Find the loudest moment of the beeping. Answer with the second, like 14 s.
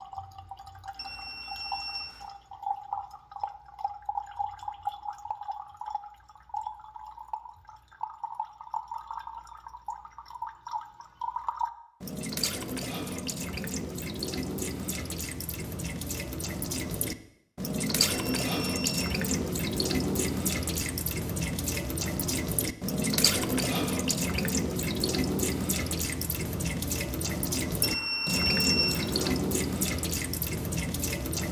29 s.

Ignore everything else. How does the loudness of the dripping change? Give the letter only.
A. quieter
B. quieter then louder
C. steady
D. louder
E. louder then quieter
D.